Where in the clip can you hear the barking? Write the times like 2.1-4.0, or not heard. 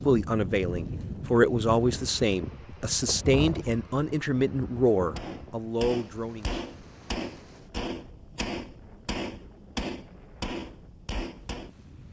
not heard.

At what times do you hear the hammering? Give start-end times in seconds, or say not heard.
5.2-11.7.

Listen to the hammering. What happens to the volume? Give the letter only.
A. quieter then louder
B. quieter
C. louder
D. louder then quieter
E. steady
E.